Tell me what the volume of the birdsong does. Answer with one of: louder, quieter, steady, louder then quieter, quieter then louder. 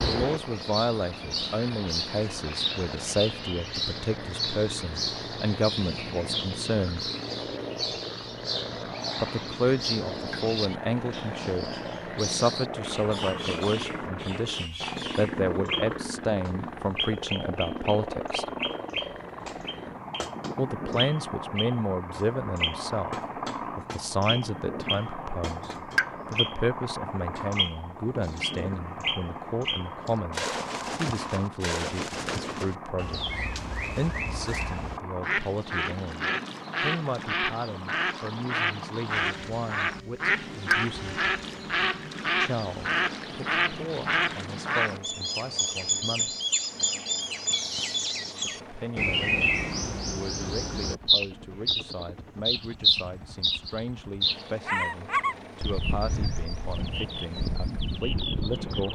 louder.